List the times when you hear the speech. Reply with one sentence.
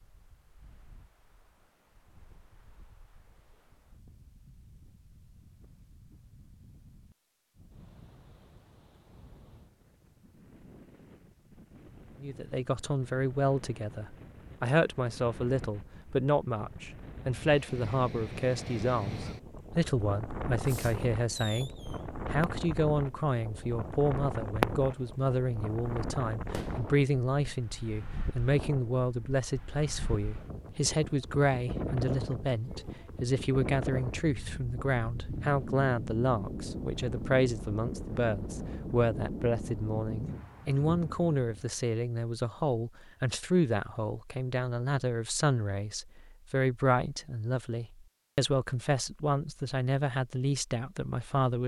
You can hear the speech from 12.2 to 21.7 s and from 22.3 to 51.6 s.